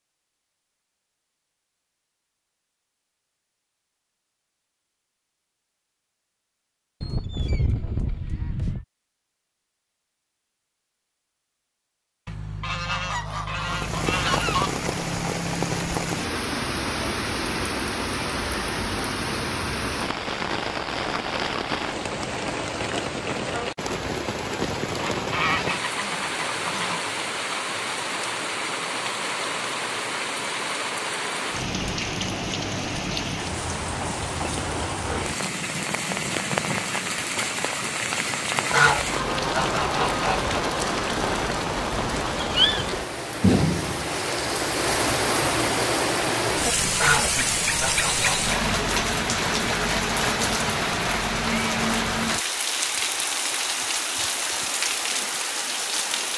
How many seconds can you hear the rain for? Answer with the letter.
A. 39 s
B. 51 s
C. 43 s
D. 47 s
C.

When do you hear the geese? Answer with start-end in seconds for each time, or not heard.
7.0-8.8, 12.2-14.7, 24.9-27.0, 38.7-40.6, 47.0-48.5.